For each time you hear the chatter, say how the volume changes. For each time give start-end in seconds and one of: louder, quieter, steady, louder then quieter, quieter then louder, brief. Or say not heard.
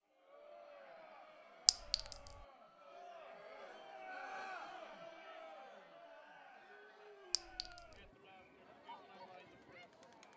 0.1-10.3 louder then quieter.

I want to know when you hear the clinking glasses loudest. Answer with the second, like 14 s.
2 s.